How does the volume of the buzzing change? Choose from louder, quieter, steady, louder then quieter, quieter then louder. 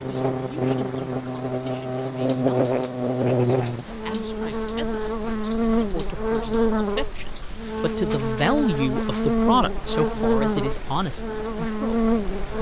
steady.